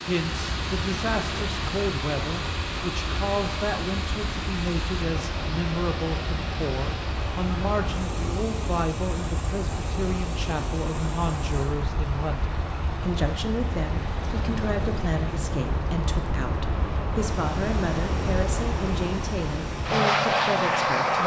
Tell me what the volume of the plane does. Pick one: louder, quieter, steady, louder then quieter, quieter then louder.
louder.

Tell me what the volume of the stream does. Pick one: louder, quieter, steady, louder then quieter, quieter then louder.
quieter.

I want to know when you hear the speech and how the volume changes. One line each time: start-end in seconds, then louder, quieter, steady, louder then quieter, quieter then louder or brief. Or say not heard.
0.0-21.2 steady.